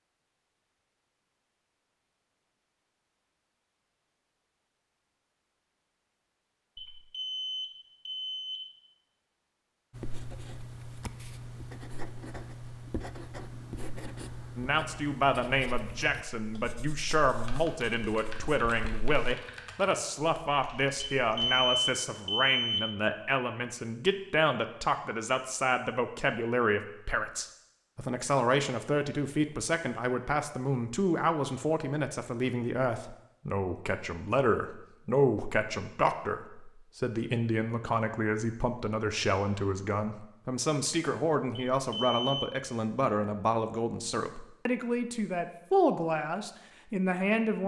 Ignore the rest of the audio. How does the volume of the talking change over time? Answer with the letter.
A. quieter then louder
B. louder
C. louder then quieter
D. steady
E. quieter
D.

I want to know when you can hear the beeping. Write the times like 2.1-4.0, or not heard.
6.8-8.7, 21.1-22.9, 41.7-42.5.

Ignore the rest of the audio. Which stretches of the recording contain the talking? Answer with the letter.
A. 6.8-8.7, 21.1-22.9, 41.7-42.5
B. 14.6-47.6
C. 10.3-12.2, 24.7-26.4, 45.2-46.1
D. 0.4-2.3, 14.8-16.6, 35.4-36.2
B.